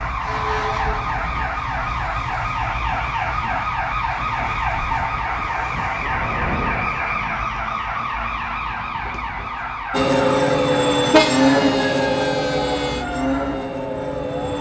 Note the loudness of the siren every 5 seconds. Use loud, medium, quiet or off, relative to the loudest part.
loud, loud, medium.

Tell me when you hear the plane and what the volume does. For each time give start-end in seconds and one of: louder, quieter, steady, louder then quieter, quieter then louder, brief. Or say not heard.
5.2-7.3 brief
9.9-14.5 quieter.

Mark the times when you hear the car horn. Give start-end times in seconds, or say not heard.
11.1-13.1.